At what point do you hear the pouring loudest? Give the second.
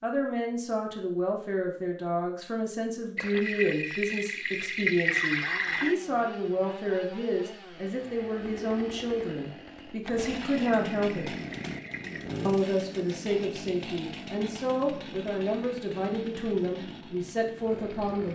5 s.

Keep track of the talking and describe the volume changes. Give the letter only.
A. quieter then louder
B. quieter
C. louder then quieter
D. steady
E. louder
D.